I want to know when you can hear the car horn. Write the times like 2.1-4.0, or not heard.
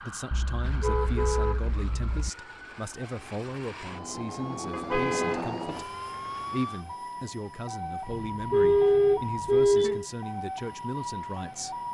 0.3-2.3, 4.7-5.5, 8.1-10.1.